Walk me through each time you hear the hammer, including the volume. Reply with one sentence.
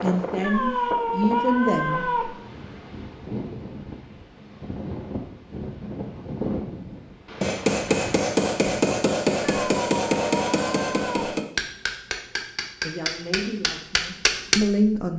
You can hear the hammer from 7.4 to 14.6 s, getting quieter.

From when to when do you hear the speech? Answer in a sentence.
The speech can be heard from 0.0 to 2.0 s and from 12.8 to 15.1 s.